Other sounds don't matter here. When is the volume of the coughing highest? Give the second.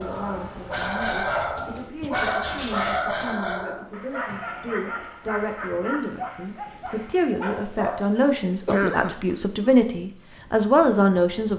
9 s.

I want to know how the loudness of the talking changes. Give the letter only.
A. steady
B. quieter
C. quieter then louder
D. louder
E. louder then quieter
D.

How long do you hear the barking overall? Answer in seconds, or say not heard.
8 s.